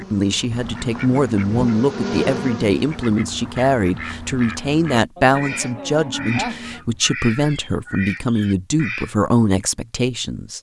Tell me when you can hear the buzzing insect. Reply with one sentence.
You can hear the buzzing insect from 0.0 to 3.0 s.